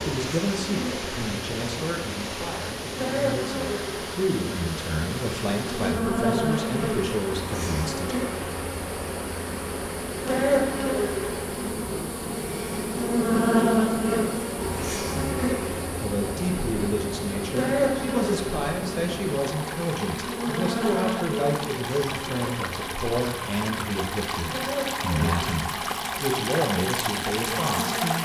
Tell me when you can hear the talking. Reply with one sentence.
You can hear the talking from 0.0 to 8.2 s and from 15.2 to 28.2 s.